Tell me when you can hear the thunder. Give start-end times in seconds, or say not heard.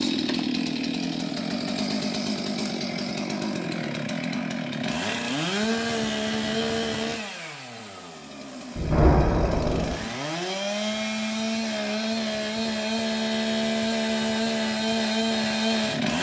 8.8-9.9.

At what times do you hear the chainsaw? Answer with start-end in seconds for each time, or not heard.
0.0-16.1.